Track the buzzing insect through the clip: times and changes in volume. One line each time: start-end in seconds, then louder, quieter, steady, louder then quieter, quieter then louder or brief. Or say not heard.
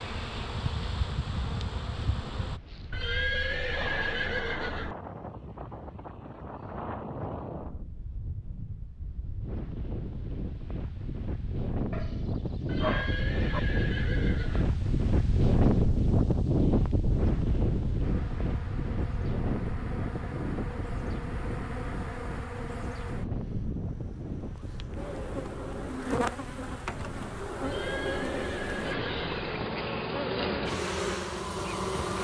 0.0-2.6 brief
18.0-32.1 louder.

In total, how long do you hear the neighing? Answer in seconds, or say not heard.
6 s.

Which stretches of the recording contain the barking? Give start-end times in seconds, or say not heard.
11.9-13.6.